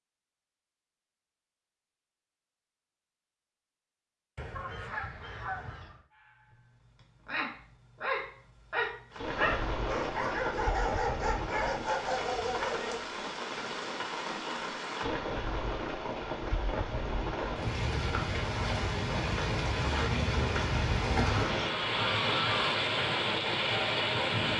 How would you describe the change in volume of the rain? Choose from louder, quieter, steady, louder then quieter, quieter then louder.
louder.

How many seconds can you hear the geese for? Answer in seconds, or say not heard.
3 s.